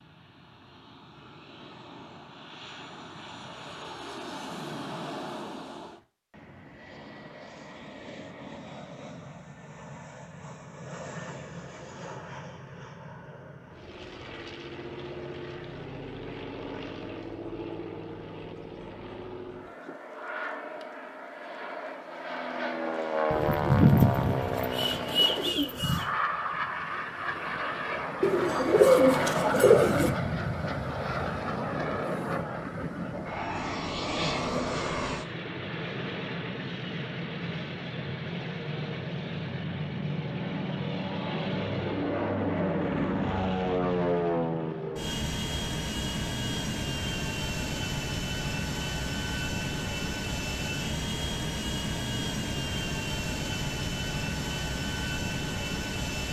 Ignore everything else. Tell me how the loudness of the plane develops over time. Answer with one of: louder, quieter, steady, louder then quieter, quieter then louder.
louder.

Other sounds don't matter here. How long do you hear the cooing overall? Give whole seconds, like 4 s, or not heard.
5 s.